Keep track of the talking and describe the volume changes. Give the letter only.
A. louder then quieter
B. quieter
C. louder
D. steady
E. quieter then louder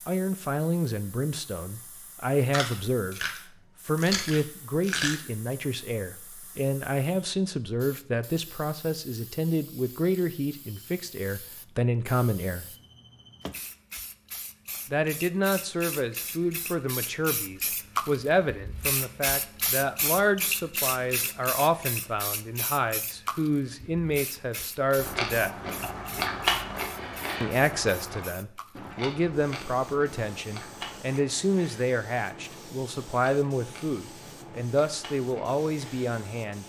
D.